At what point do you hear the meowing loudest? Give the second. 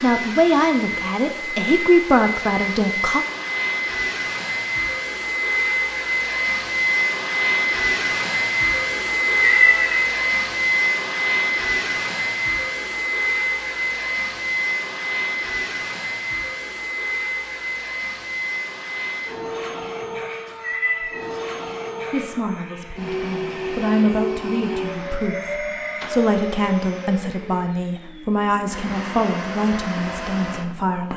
10 s.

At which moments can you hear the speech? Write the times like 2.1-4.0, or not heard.
0.0-3.2, 22.1-31.1.